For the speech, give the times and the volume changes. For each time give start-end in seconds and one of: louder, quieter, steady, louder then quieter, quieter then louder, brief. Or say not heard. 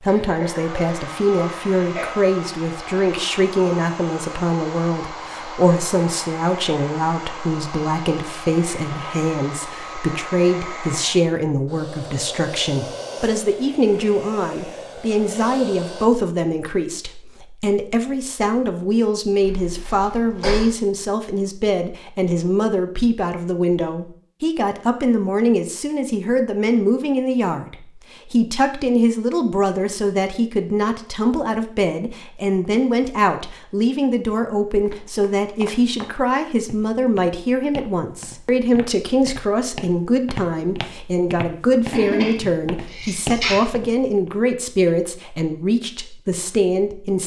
0.0-47.2 steady.